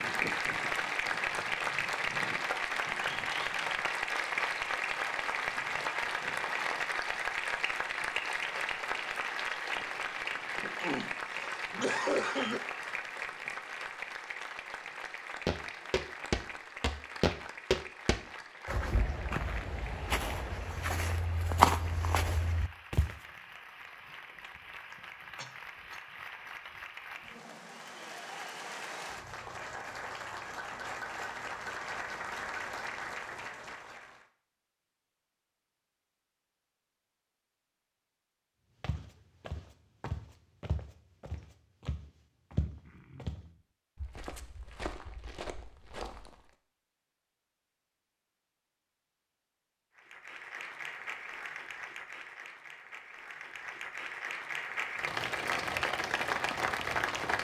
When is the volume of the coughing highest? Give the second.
12 s.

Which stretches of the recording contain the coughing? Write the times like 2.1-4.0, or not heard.
10.8-12.7, 24.9-26.0, 42.5-43.6.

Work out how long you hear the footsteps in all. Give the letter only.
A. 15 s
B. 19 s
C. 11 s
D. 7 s
A.